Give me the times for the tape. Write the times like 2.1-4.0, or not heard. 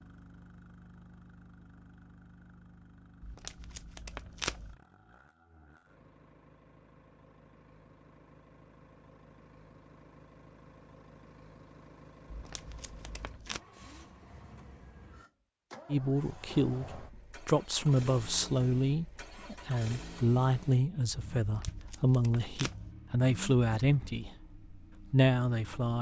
3.2-4.8, 12.3-13.6, 21.4-22.9.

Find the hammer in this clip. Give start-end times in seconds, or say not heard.
not heard.